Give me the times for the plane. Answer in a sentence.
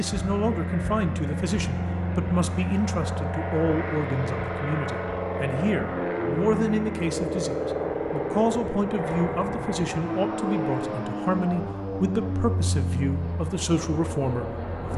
The plane can be heard from 0.0 to 14.9 s.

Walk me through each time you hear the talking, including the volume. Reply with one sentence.
The talking can be heard from 0.0 to 14.9 s, at a steady volume.